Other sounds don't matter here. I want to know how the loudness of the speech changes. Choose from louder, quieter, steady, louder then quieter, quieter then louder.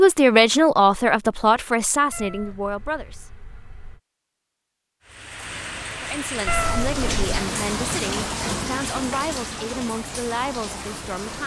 quieter.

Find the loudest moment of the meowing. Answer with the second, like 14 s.
7 s.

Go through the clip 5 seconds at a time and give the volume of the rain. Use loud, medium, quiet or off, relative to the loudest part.
off, loud, medium.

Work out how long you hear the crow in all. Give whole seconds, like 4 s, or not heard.
not heard.